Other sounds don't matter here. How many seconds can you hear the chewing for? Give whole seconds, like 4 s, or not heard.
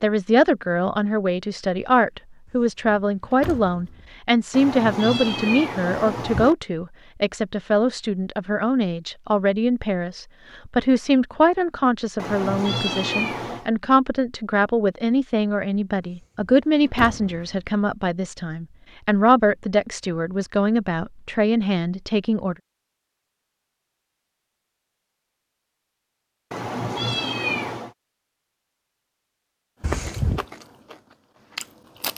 2 s.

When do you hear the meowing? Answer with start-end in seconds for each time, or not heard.
4.5-6.5, 12.2-13.7, 26.5-27.9.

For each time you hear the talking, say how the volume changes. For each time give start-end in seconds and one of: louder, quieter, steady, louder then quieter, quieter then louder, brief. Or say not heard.
0.0-22.6 steady.